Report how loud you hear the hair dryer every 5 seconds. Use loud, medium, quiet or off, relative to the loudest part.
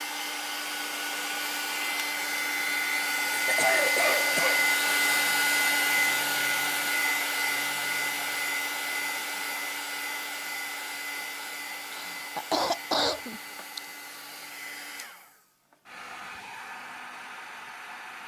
loud, loud, medium, quiet.